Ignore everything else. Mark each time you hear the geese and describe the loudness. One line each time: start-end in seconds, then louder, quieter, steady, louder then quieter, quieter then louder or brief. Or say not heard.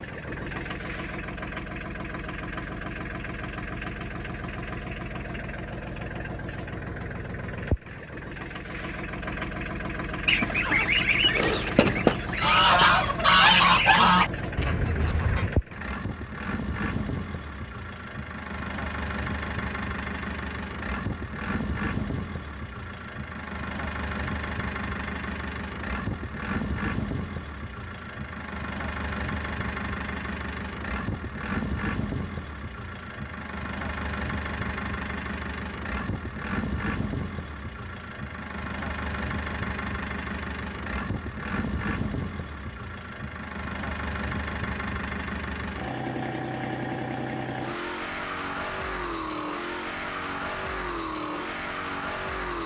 10.2-15.5 louder then quieter.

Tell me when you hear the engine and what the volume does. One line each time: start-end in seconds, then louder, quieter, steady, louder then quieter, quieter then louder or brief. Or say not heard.
0.0-52.6 steady.